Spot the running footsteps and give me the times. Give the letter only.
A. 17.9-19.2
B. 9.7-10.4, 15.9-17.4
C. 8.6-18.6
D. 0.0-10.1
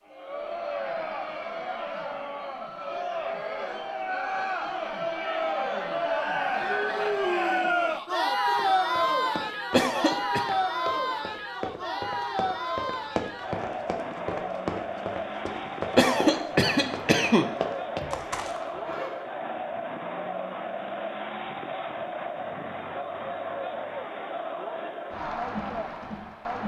C.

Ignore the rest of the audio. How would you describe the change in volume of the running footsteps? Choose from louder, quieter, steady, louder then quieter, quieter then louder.
louder.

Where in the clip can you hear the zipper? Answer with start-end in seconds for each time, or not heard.
17.9-19.2.